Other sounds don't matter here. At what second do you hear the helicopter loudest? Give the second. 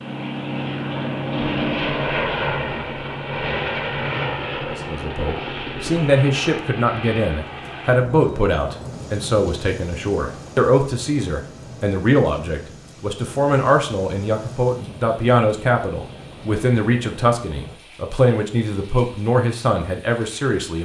2 s.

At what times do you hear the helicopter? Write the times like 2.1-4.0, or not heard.
0.0-17.8.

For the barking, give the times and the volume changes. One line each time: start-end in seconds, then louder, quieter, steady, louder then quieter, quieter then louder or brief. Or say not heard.
not heard.